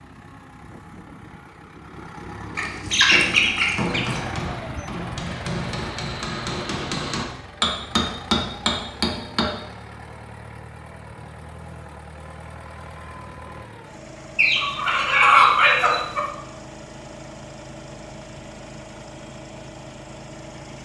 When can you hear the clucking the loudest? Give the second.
15 s.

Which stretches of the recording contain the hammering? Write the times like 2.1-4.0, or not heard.
3.1-9.6.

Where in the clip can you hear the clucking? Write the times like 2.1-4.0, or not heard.
2.5-4.2, 14.3-16.2.